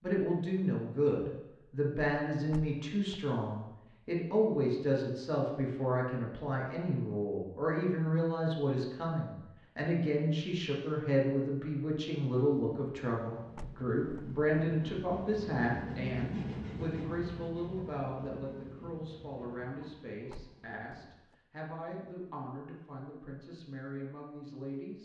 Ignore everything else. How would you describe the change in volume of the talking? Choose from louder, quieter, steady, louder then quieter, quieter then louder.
quieter.